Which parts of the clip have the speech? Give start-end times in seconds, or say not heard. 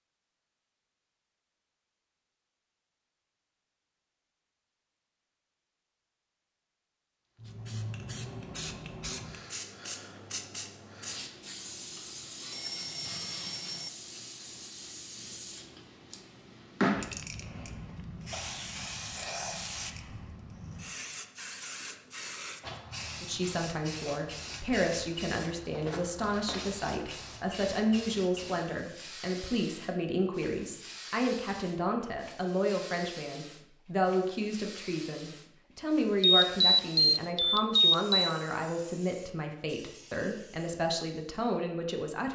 23.2-42.3.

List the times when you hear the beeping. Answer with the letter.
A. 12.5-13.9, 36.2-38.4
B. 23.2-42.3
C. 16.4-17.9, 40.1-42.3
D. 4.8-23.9
A.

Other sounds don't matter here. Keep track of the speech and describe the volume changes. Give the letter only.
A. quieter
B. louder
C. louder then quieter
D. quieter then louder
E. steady
E.